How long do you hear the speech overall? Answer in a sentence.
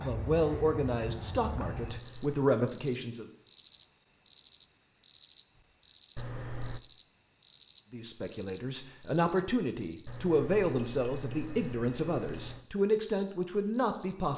The speech can be heard for 10 seconds in total.